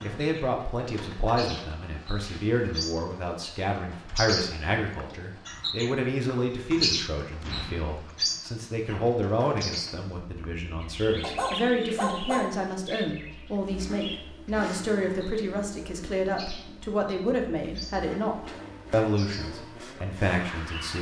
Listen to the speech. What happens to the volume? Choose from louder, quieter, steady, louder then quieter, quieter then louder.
steady.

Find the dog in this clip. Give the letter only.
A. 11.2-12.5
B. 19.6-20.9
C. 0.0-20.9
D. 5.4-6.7
A.